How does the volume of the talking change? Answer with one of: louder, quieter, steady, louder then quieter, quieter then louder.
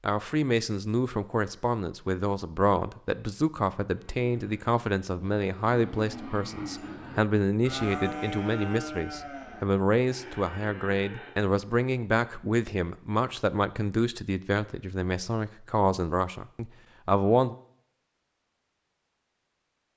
steady.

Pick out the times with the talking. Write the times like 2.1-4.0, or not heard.
0.0-17.6.